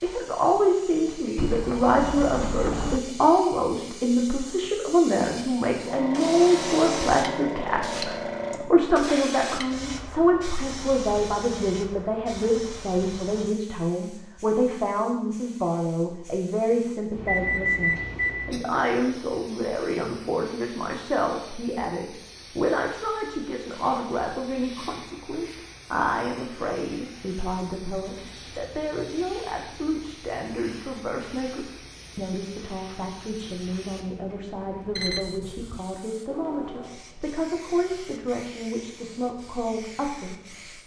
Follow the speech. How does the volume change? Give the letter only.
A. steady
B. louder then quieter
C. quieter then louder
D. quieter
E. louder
D.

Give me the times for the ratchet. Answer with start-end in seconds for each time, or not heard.
not heard.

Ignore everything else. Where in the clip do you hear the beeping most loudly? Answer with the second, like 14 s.
18 s.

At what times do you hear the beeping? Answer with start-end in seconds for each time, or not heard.
1.4-3.0, 17.2-18.4, 35.0-35.8.